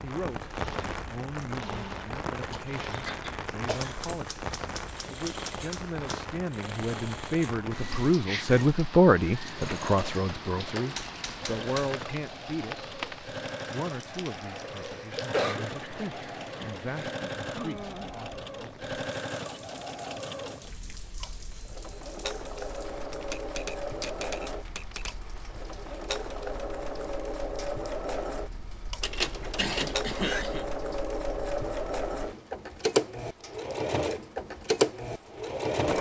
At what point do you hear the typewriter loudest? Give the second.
29 s.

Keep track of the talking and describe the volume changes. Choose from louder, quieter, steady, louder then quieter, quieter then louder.
louder then quieter.